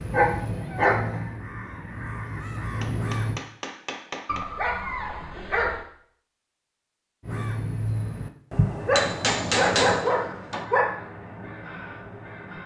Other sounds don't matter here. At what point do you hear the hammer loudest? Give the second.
10 s.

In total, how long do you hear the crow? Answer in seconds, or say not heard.
9 s.